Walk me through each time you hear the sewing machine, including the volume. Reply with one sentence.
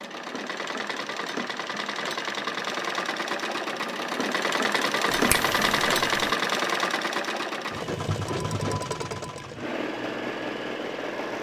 The sewing machine can be heard from 0.0 to 11.3 s, getting louder then quieter.